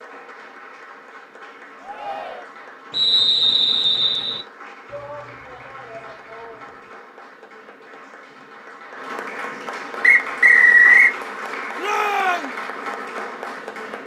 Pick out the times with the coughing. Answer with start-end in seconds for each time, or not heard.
not heard.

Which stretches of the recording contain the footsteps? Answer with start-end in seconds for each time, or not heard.
not heard.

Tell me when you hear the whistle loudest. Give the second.
11 s.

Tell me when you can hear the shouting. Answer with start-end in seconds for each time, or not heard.
1.8-2.5, 4.8-6.8, 11.8-12.5.